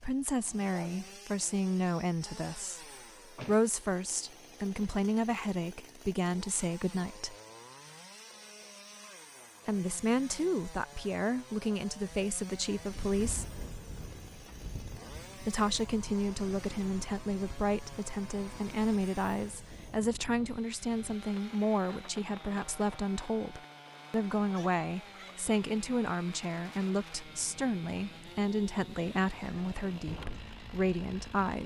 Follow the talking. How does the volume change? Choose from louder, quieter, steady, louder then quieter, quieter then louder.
steady.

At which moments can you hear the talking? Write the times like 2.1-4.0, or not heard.
0.0-7.3, 9.7-13.4, 15.3-31.6.